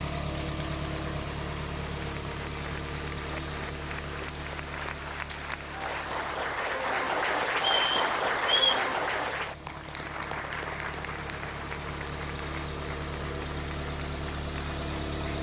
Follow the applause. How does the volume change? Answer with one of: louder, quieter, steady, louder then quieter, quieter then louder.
louder then quieter.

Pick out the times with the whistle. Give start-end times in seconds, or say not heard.
7.5-8.8.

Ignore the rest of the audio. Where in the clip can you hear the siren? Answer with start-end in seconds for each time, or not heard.
not heard.